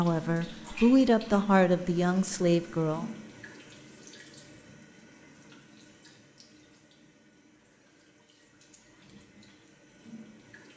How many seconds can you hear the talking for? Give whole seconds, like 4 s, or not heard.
3 s.